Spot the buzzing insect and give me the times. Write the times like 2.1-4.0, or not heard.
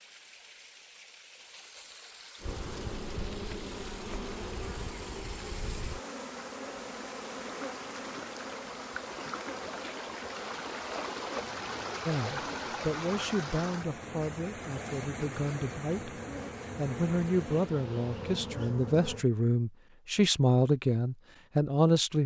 2.4-19.2.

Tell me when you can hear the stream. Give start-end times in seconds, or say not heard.
0.0-18.6.